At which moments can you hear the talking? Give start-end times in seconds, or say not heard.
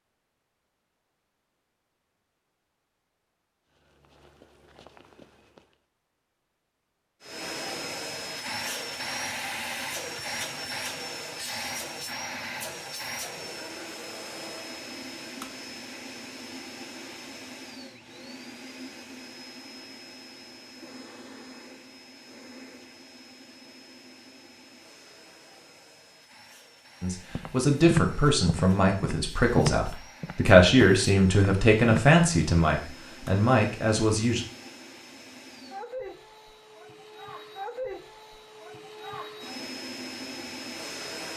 27.0-34.5.